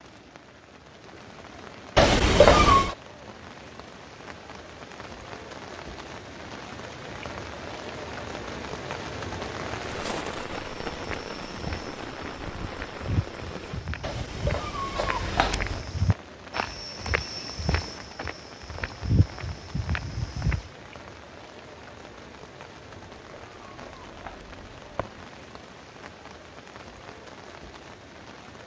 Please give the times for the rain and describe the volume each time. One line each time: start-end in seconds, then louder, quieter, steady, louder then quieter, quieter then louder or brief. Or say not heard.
0.0-28.6 louder then quieter.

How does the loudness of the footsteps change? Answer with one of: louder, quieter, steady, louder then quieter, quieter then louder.
louder.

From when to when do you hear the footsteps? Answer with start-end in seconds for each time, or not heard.
9.8-20.7.